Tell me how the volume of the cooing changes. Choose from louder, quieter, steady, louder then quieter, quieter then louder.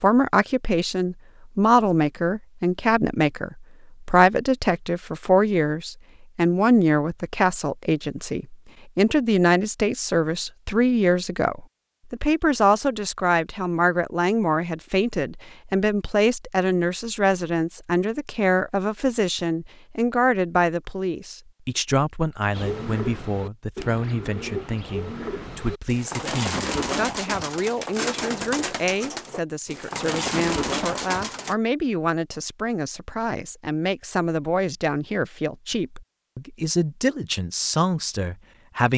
louder.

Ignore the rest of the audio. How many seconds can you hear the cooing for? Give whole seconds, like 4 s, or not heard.
9 s.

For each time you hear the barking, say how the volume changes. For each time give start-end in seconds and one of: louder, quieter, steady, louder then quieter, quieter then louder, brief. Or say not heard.
not heard.